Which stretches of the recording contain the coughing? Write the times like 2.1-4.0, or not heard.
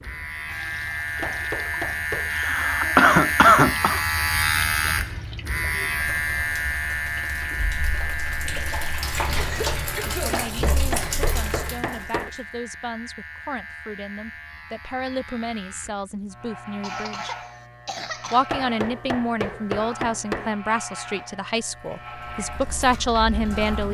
2.3-4.0, 9.3-10.4, 16.8-18.5.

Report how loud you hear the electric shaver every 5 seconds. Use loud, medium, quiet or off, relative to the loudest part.
loud, loud, quiet, quiet, quiet.